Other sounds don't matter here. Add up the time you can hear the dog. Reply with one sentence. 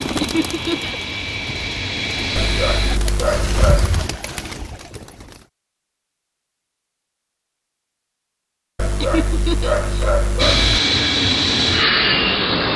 The dog can be heard for 4 seconds in total.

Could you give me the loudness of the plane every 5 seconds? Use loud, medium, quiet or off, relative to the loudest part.
medium, off, loud.